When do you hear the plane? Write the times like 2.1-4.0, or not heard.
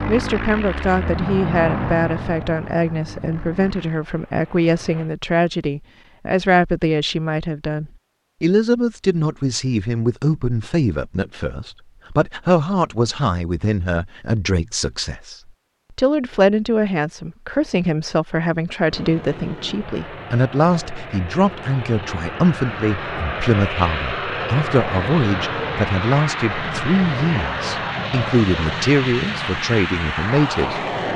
0.0-5.1, 18.9-31.1.